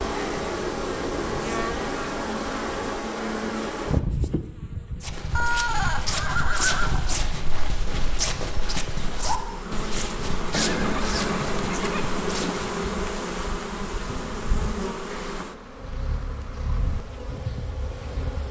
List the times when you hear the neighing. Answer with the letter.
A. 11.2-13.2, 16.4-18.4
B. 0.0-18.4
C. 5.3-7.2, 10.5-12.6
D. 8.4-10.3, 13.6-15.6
C.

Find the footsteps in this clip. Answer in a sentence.
The footsteps can be heard from 5.0 to 12.8 s.